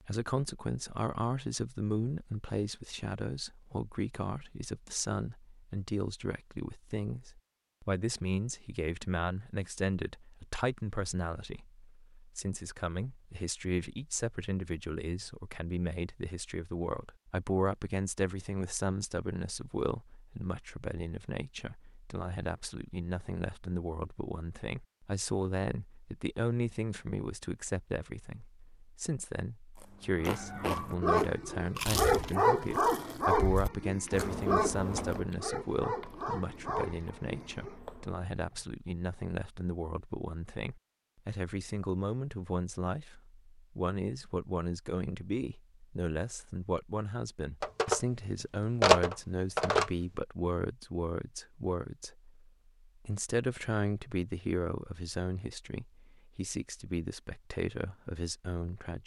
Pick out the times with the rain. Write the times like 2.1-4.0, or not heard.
not heard.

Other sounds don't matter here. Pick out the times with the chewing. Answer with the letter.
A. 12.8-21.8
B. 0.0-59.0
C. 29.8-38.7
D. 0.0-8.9
C.